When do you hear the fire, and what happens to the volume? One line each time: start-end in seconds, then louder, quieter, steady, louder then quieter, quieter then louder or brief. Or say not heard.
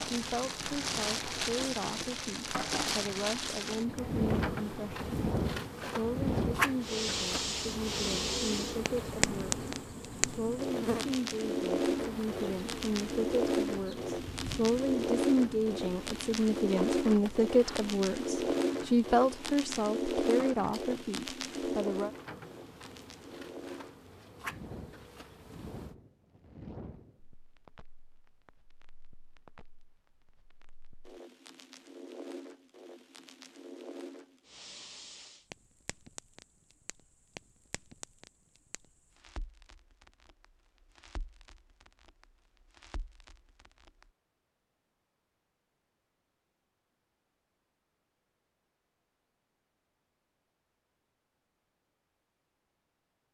0.0-44.1 quieter.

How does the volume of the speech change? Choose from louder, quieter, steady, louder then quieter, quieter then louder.
louder.